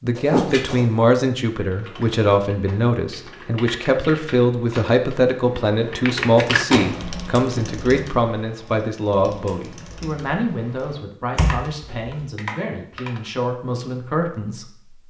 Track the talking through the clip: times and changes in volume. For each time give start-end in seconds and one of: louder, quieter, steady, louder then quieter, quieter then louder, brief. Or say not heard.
0.0-15.0 quieter.